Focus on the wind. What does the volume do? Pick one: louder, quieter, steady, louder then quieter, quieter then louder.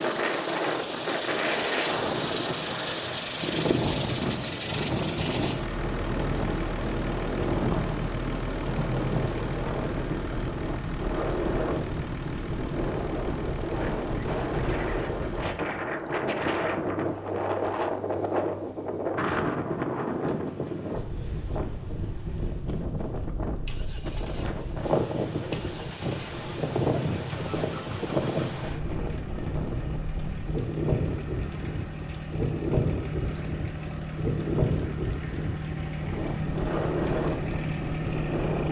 steady.